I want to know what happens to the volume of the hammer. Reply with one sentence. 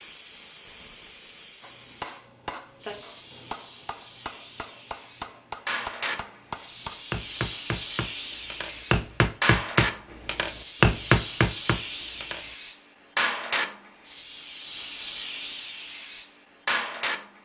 The loudness of the hammer goes up.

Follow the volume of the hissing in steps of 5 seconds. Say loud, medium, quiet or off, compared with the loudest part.
medium, loud, loud, loud.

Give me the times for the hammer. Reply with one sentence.
The hammer can be heard from 1.6 to 12.4 s.